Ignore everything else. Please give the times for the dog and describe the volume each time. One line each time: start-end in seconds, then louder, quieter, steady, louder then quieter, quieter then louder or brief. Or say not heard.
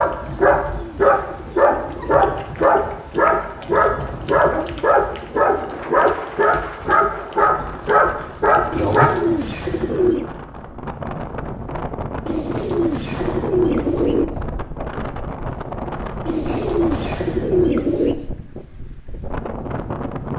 0.0-9.1 steady.